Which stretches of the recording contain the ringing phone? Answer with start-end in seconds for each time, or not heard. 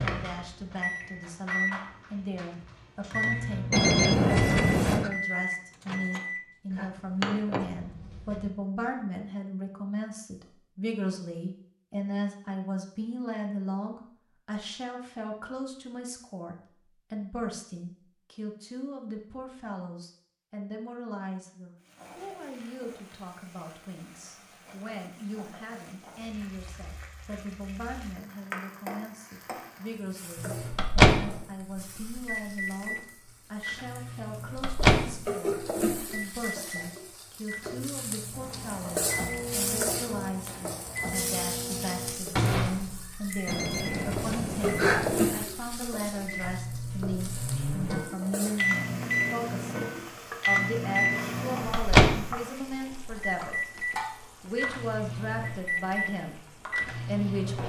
3.7-5.1, 43.5-45.5.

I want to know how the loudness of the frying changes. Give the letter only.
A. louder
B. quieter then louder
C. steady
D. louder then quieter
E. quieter
D.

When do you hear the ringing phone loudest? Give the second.
4 s.